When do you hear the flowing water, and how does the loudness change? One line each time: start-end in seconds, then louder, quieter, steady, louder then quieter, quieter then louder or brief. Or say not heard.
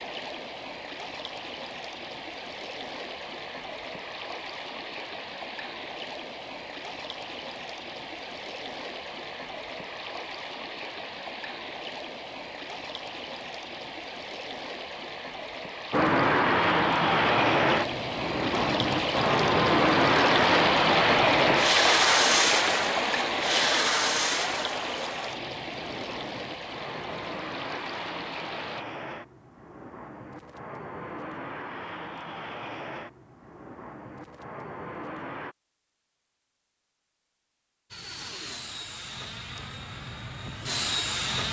0.0-28.9 louder then quieter.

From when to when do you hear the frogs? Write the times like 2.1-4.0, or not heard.
not heard.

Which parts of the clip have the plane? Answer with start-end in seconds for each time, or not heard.
15.9-35.5, 37.9-41.4.